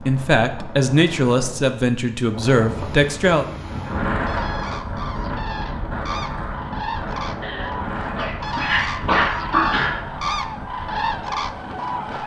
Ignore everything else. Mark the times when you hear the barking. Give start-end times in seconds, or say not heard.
7.4-10.1.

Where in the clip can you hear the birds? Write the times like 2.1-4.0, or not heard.
3.6-12.2.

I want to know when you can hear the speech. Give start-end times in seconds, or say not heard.
0.1-3.5.